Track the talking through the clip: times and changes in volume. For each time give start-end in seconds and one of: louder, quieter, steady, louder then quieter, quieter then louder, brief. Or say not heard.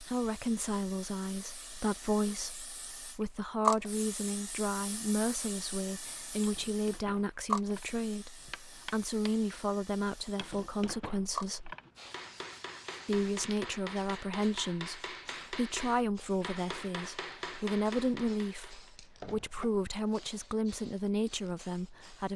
0.0-11.8 steady
13.1-22.3 steady.